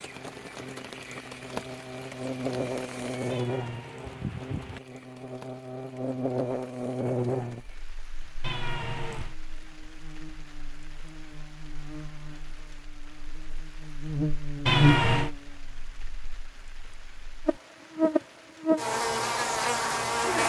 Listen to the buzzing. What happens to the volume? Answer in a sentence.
The volume of the buzzing goes down, then up.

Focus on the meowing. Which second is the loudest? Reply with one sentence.
The loudest moment of the meowing is at 15 seconds.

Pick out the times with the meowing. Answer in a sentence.
You can hear the meowing from 3.3 to 4.8 s, from 8.4 to 9.3 s and from 14.7 to 15.3 s.